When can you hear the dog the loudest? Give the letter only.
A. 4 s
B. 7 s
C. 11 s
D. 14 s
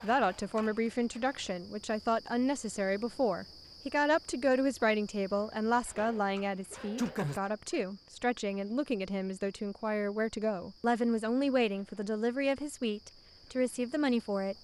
B.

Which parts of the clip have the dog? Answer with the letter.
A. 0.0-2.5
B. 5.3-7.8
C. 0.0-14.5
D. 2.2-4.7
B.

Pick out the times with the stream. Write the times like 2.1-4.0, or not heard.
not heard.